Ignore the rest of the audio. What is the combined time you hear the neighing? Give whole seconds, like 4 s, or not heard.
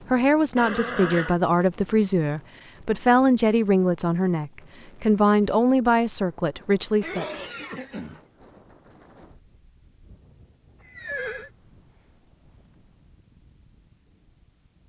3 s.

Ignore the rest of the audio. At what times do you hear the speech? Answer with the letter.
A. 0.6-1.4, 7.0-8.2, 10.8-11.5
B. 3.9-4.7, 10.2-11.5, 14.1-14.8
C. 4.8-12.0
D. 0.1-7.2
D.